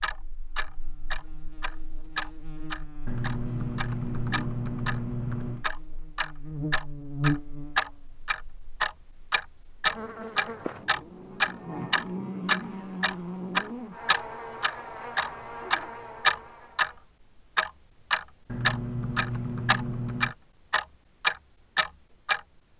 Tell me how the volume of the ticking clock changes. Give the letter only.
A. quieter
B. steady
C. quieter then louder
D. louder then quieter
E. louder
E.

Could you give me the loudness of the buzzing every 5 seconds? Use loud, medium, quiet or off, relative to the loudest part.
quiet, loud, loud, medium, off.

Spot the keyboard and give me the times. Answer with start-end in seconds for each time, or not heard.
3.0-5.7, 18.4-20.4.